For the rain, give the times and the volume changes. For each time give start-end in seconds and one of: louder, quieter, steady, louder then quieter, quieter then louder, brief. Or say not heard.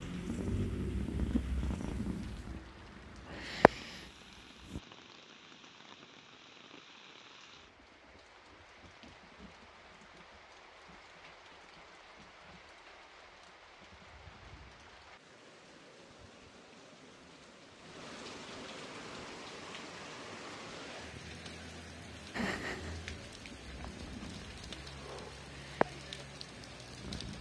0.0-27.3 louder.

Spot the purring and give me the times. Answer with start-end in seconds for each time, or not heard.
0.0-4.8, 22.3-27.3.